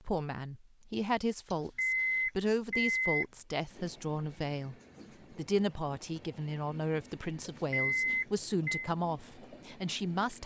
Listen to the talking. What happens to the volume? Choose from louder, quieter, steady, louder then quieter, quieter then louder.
steady.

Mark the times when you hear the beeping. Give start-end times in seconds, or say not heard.
1.5-3.2, 7.4-8.9.